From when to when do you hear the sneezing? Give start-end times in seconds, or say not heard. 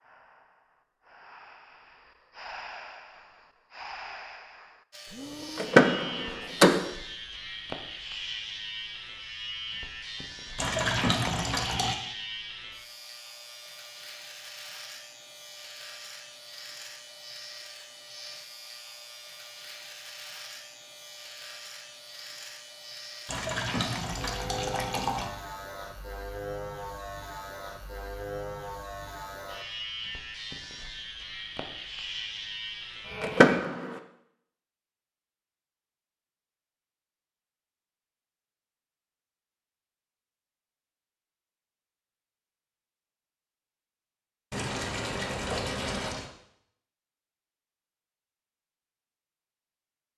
not heard.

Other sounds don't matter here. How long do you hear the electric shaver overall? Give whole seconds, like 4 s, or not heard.
29 s.